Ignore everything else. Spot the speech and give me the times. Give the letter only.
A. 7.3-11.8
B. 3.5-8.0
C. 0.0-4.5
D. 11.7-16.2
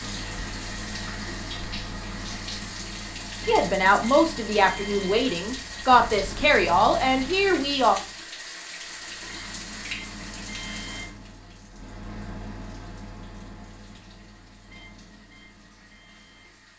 B.